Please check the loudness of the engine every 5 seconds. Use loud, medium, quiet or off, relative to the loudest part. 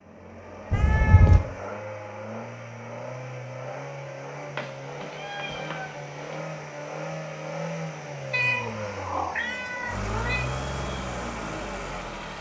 medium, loud, loud.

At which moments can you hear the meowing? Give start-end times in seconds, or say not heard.
0.7-1.4, 4.5-6.4, 8.3-10.5.